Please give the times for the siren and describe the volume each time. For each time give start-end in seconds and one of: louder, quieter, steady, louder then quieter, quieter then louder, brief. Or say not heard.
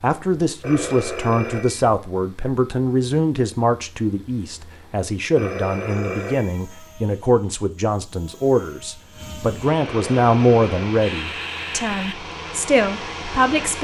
not heard.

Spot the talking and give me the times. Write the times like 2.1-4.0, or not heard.
0.0-13.7.